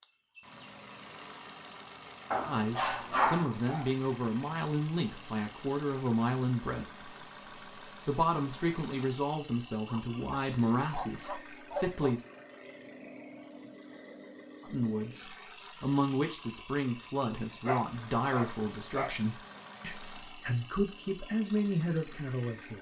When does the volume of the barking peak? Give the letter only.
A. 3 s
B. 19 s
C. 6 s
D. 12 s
A.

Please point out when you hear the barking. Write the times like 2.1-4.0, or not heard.
2.3-3.9, 9.8-12.2, 17.6-19.1.